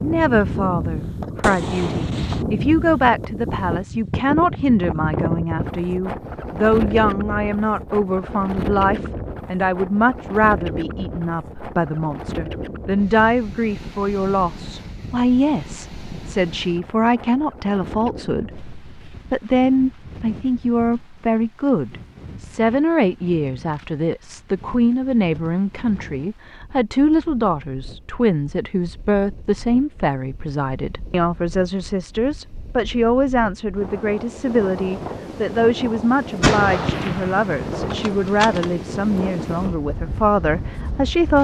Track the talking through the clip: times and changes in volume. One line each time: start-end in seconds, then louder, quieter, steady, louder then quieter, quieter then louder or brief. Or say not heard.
0.0-41.3 steady.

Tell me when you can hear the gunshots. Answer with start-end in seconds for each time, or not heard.
1.4-2.5, 36.4-38.8.